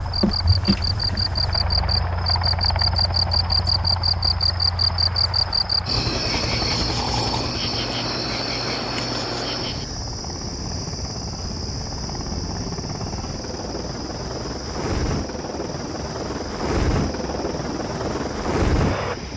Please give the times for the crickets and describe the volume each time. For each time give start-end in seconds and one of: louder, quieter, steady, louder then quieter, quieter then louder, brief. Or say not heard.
0.0-19.3 quieter.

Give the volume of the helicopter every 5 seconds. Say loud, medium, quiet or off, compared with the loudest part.
loud, medium, medium, loud.